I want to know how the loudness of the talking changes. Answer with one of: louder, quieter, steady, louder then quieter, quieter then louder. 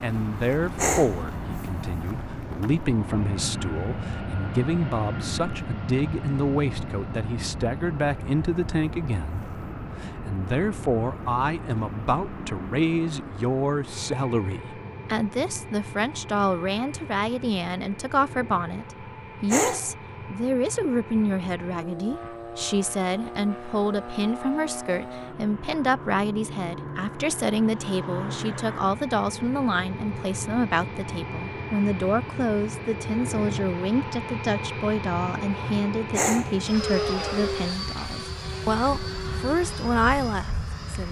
steady.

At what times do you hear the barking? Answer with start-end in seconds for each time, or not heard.
0.8-1.2, 19.4-19.9, 36.1-36.5.